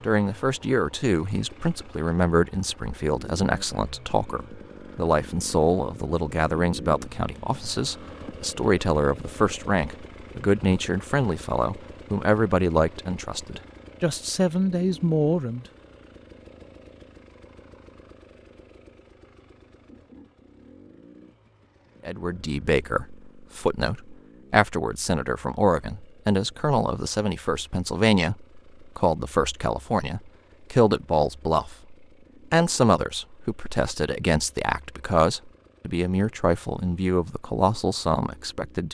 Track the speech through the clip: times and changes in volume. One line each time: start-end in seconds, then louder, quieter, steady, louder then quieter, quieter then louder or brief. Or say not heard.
0.0-15.7 steady
22.1-38.8 steady.